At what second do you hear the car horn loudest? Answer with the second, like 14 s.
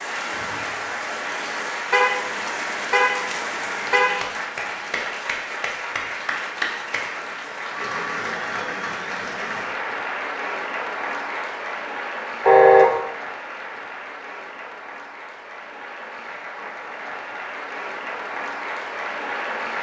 13 s.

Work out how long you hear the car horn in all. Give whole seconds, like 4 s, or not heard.
3 s.